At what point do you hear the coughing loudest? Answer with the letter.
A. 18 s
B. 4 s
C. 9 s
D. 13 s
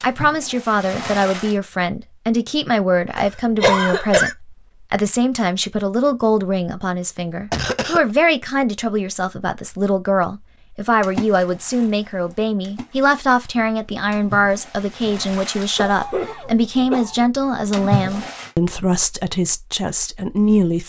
B.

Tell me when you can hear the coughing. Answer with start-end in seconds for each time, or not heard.
3.1-4.3, 7.5-8.0, 15.8-17.2.